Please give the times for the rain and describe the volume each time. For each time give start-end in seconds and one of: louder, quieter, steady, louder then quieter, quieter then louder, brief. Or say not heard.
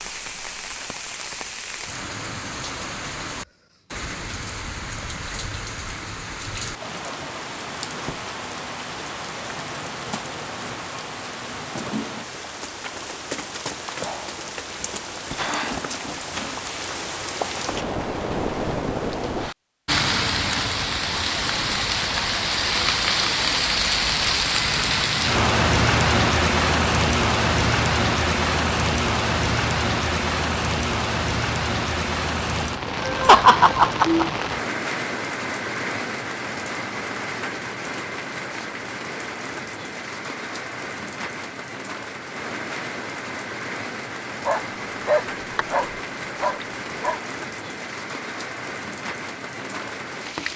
0.0-50.5 louder then quieter.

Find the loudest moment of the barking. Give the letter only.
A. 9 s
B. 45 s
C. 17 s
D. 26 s
B.